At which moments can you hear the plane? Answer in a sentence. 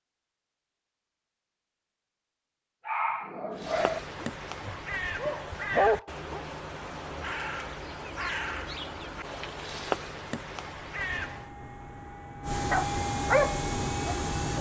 You can hear the plane from 10.9 to 14.5 s.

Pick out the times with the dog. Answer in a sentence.
You can hear the dog from 2.9 to 6.4 s and from 12.7 to 14.5 s.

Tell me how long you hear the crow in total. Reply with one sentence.
You can hear the crow for 8 seconds altogether.